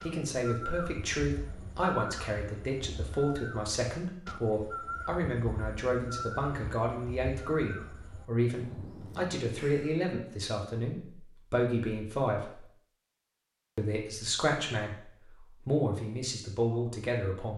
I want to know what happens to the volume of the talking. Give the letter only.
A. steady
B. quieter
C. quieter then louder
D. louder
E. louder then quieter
A.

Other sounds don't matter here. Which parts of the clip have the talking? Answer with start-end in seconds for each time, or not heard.
0.0-12.7, 13.8-17.5.